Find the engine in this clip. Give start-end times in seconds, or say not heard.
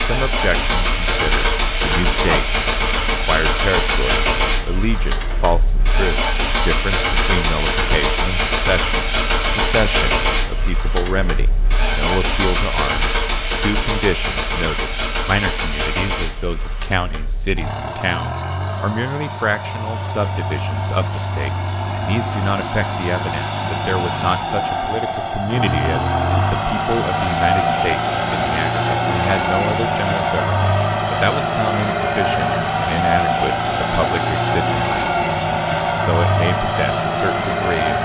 0.0-37.9.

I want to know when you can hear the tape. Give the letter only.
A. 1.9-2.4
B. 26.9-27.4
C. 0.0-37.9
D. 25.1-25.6
A.